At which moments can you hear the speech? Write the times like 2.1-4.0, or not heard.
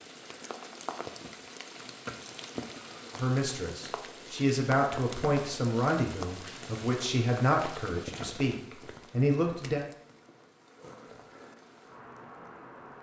3.1-9.8.